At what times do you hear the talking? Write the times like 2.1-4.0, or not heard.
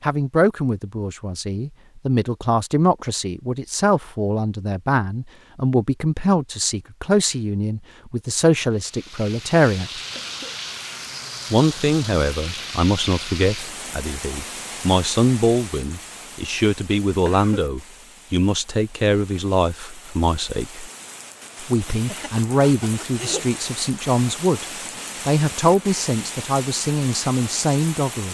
0.0-10.0, 11.5-20.9, 21.6-24.6, 25.2-28.3.